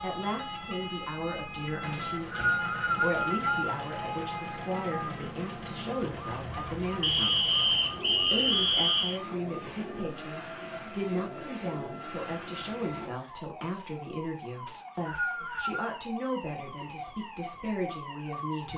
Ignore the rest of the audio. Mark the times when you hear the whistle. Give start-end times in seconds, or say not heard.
1.9-3.5, 7.0-9.2, 14.7-15.9.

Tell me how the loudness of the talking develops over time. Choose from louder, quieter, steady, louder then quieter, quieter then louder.
steady.